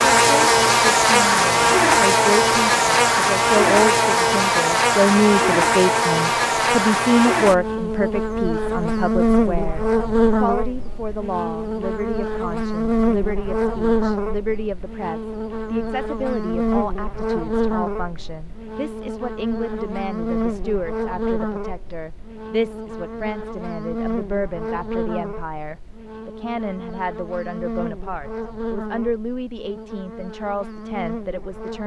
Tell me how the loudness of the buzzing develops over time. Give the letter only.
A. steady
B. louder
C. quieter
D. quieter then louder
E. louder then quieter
C.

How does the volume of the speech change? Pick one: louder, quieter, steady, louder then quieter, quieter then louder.
quieter.